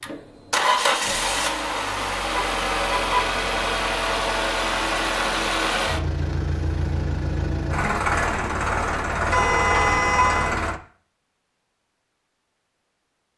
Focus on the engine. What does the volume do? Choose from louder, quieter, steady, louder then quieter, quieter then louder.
steady.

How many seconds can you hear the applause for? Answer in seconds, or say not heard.
not heard.